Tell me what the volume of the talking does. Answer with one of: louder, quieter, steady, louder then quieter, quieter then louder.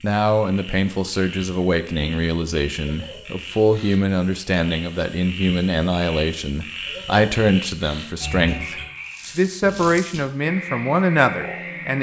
steady.